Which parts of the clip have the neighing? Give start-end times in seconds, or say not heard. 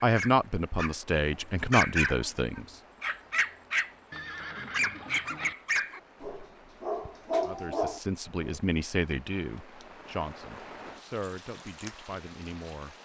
4.1-5.5.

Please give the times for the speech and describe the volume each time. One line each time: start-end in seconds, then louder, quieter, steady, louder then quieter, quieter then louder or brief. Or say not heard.
0.0-2.6 brief
7.4-12.9 quieter.